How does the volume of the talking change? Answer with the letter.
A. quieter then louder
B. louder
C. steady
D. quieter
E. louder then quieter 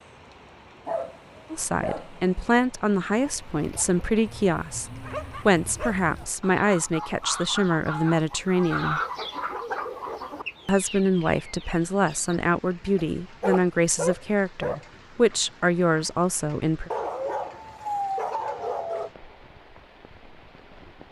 C.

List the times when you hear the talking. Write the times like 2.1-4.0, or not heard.
1.5-9.0, 10.7-16.9.